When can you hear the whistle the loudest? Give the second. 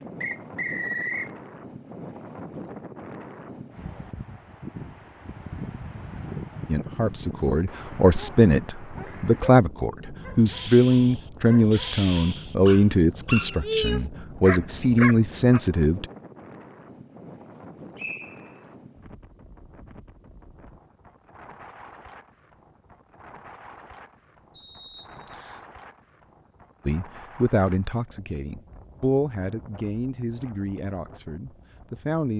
1 s.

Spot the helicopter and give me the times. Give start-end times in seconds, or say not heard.
not heard.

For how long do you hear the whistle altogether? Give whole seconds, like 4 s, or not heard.
3 s.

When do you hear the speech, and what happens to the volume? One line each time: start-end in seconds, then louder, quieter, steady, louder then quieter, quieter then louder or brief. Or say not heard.
6.7-16.1 steady
26.9-32.3 quieter.